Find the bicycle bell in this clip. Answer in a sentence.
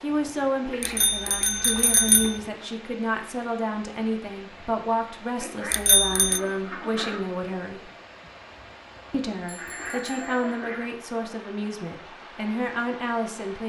You can hear the bicycle bell from 0.8 to 2.4 s, from 5.7 to 6.4 s and from 9.4 to 10.4 s.